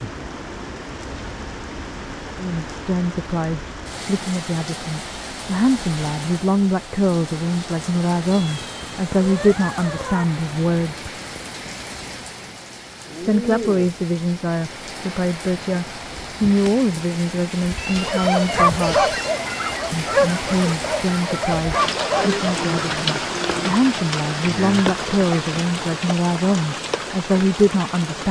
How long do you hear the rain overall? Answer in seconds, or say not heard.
28 s.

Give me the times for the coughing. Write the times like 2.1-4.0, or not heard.
not heard.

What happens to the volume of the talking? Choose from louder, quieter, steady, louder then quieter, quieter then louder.
steady.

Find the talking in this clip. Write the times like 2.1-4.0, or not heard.
2.4-11.1, 13.2-19.1, 19.9-28.2.